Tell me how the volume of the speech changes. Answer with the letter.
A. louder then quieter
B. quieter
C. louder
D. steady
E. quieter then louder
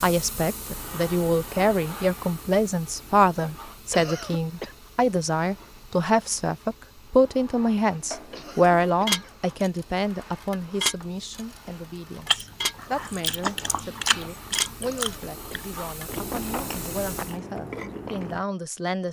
B.